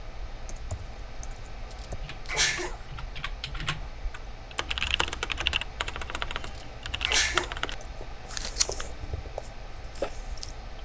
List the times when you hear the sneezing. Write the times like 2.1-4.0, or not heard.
2.2-2.8, 7.0-7.5.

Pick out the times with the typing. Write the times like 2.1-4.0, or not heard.
0.3-7.8.